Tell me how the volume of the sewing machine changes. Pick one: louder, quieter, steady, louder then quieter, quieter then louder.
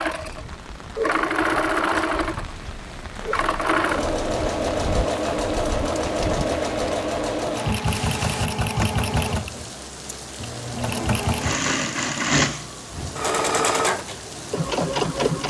steady.